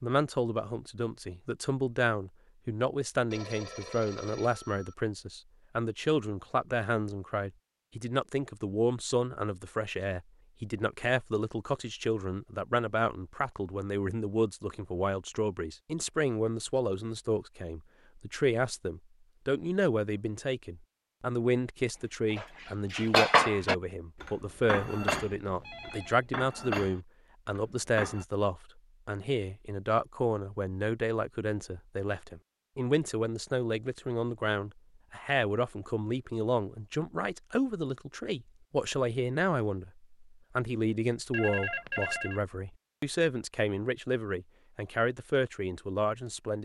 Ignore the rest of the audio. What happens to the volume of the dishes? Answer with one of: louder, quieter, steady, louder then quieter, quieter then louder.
quieter.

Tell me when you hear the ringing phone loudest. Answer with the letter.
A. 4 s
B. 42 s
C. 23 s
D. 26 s
B.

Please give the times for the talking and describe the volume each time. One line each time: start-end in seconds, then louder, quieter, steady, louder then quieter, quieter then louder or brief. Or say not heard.
0.0-46.6 steady.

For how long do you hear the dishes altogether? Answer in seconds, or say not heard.
6 s.